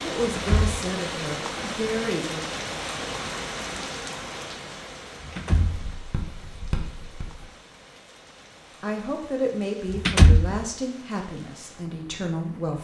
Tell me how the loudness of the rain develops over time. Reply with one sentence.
The volume of the rain goes down.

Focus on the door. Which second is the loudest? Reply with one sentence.
The volume of the door peaks at 10 seconds.